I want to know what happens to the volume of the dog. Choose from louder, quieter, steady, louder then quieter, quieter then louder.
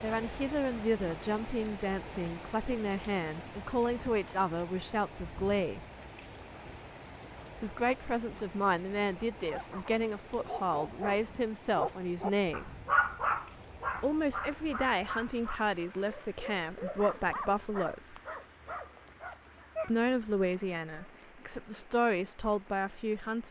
louder then quieter.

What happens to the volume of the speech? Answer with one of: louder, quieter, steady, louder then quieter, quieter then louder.
steady.